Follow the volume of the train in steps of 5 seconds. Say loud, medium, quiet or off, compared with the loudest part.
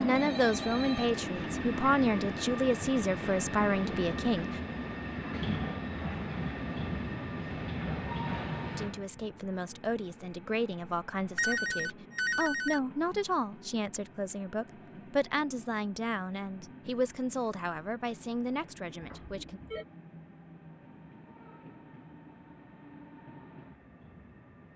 loud, loud, quiet, quiet, quiet.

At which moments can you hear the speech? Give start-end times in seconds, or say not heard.
0.0-4.6, 8.7-19.6.